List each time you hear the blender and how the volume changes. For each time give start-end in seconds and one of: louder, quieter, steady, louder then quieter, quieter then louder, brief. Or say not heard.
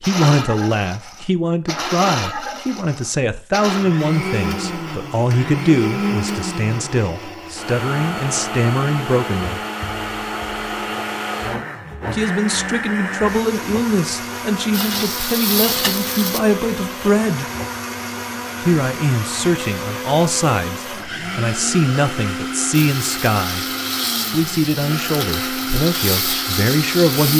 0.0-27.3 steady.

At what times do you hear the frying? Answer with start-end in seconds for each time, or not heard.
14.7-16.4, 22.7-27.3.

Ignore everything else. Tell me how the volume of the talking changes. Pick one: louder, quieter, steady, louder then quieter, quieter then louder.
steady.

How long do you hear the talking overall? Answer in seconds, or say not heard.
23 s.